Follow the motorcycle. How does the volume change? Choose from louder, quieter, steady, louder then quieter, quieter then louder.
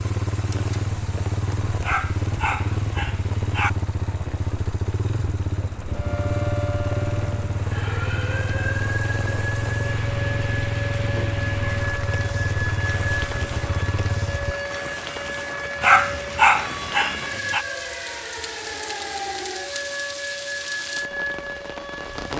steady.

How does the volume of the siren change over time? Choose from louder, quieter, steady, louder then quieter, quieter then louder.
steady.